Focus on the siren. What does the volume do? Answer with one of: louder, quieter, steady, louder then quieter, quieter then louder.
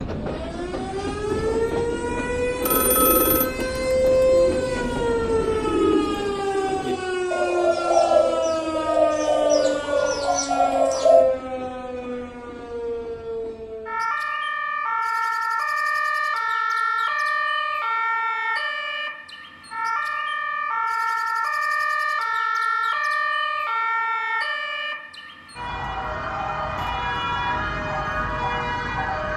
steady.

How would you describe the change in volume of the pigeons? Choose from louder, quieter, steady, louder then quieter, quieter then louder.
louder.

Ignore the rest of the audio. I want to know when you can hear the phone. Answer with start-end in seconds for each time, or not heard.
2.6-3.5.